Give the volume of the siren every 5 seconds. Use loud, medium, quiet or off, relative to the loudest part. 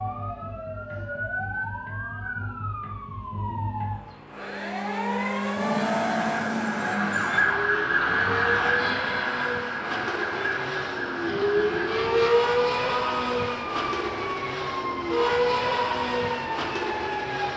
medium, loud, medium, medium.